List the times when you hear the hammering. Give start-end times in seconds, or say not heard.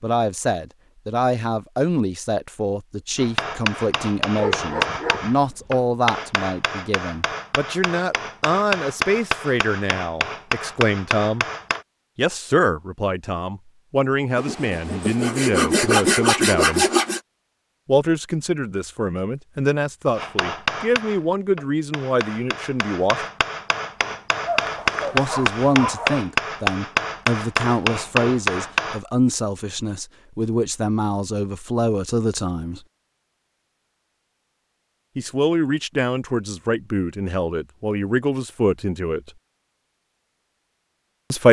3.1-11.8, 20.1-29.0.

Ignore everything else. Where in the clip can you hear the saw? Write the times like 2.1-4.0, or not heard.
14.3-17.2.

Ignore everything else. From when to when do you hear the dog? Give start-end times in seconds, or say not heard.
4.3-5.8, 24.4-26.2.